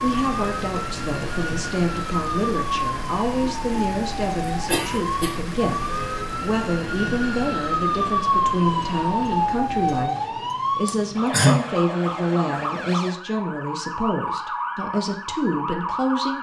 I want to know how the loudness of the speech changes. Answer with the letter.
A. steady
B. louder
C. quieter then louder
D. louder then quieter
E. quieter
A.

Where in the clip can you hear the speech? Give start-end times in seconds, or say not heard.
0.0-16.3.